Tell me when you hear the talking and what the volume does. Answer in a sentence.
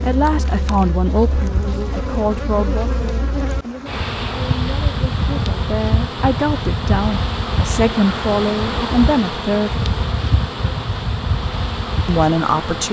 You can hear the talking from 0.0 to 9.8 s, getting quieter then louder; and briefly from 12.1 to 12.8 s.